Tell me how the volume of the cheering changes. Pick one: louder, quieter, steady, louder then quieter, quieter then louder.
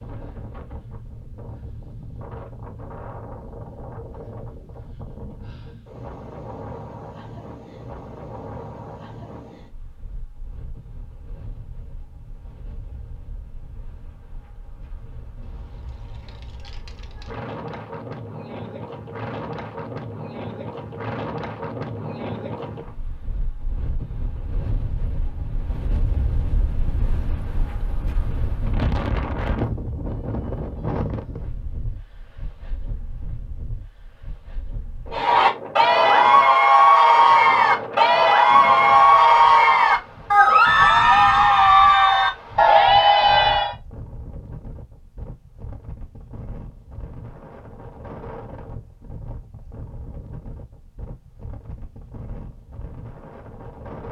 steady.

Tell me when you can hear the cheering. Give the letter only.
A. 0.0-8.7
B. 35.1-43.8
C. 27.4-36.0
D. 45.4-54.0
B.